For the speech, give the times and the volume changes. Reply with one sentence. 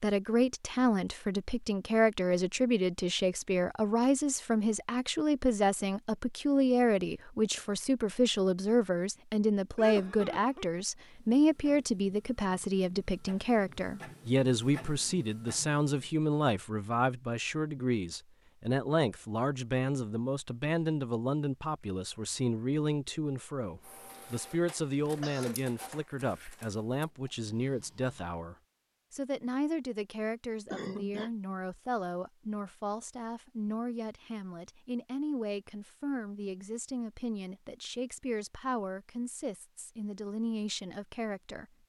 You can hear the speech from 0.0 to 41.6 s, getting quieter.